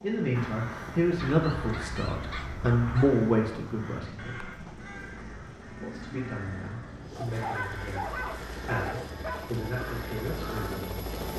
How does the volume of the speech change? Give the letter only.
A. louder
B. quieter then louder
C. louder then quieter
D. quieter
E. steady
D.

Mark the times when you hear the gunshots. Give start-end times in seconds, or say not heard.
not heard.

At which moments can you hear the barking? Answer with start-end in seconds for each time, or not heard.
1.1-3.1, 7.2-9.7.